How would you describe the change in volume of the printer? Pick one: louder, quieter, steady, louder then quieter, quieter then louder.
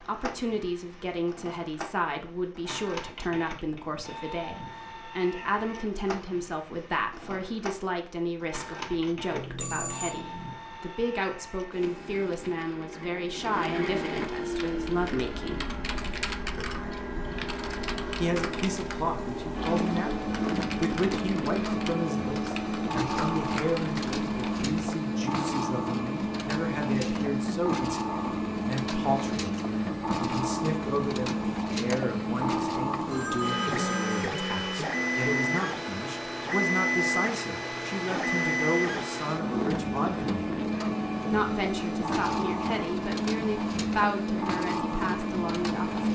louder.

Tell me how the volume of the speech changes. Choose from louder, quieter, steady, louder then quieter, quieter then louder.
steady.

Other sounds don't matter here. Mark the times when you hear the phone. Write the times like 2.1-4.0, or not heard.
9.3-10.6, 33.1-34.3.